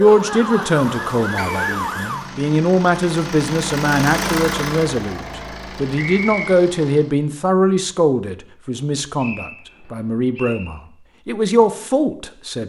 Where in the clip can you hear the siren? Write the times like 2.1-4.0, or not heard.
0.0-2.3.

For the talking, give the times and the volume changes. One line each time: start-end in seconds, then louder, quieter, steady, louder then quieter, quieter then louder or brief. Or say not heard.
0.0-12.6 steady.